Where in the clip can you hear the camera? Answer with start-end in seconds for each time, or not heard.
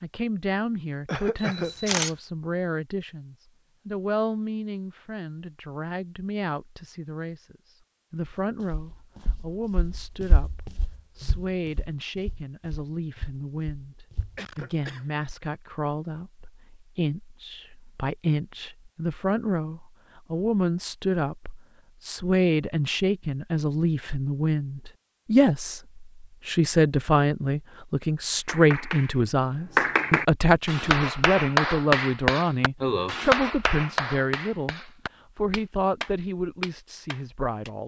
1.4-2.1.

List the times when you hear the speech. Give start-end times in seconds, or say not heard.
0.0-37.8.